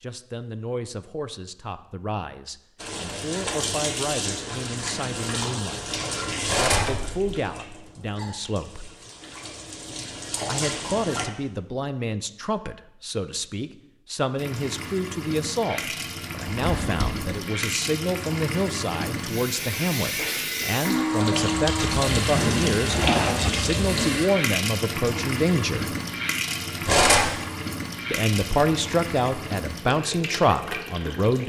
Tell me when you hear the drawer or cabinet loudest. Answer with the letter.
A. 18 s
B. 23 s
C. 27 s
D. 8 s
B.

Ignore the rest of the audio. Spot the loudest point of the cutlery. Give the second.
27 s.